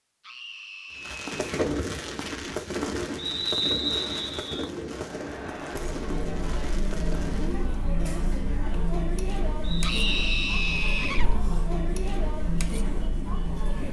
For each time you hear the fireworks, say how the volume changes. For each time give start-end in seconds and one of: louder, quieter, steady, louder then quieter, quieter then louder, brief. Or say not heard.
0.9-7.7 quieter.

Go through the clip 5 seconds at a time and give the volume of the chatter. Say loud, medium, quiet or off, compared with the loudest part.
off, loud, loud.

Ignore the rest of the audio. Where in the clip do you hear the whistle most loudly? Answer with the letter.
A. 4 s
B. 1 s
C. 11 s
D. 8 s
A.